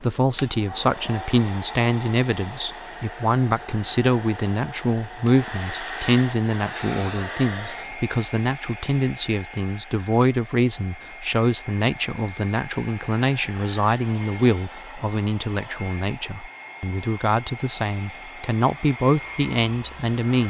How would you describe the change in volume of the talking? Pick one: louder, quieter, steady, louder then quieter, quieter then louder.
steady.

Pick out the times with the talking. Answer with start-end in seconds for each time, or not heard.
0.0-20.4.